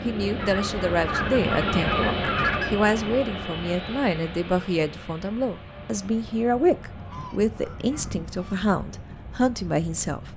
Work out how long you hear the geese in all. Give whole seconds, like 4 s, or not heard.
4 s.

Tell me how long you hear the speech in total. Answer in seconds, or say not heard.
10 s.